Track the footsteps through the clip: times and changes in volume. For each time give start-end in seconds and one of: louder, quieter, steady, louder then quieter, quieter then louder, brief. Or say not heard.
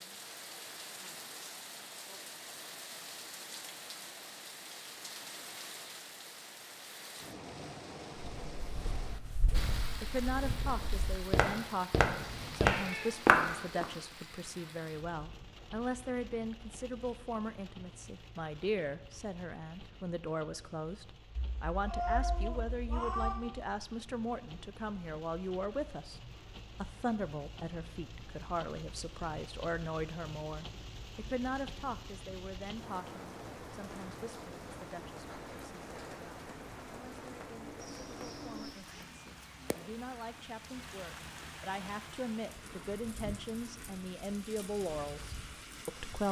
8.2-13.8 louder.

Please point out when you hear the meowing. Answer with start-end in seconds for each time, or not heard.
12.2-13.9, 21.4-23.4, 37.8-39.0.